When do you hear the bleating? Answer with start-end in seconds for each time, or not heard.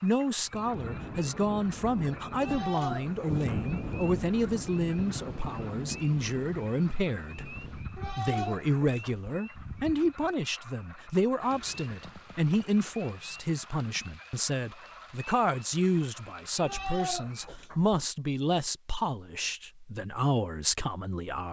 2.4-3.6, 8.0-9.4, 16.6-18.0.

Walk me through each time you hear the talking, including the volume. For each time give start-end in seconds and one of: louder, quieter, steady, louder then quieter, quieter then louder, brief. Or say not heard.
0.0-21.4 steady.